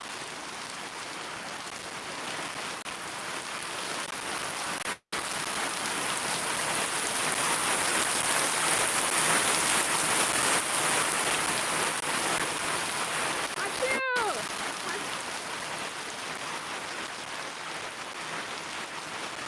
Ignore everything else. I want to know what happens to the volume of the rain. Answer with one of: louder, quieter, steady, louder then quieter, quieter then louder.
louder then quieter.